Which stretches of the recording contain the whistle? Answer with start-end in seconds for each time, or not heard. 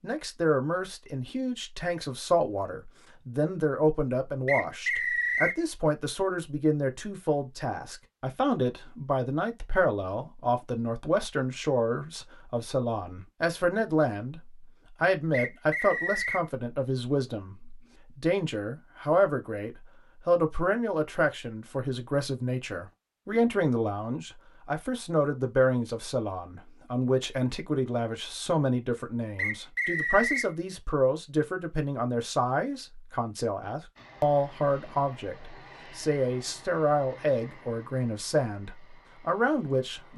4.5-5.6, 15.3-16.4, 29.4-30.5.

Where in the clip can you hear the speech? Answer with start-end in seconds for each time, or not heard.
0.0-14.4, 15.0-40.1.